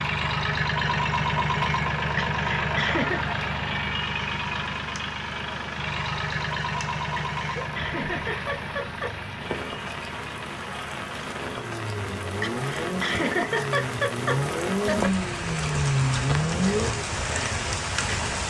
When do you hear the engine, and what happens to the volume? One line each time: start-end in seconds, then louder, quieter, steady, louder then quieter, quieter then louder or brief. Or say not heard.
0.0-17.1 quieter then louder.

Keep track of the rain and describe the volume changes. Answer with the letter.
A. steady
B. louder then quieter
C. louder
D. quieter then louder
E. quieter
C.